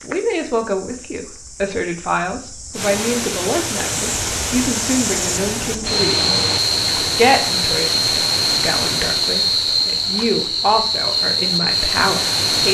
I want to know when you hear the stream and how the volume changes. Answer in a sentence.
You can hear the stream from 2.7 to 12.7 s, getting quieter.